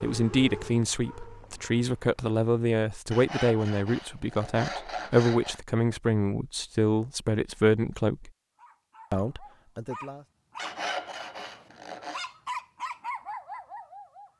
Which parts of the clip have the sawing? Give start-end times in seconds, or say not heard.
3.1-5.6, 10.6-12.2.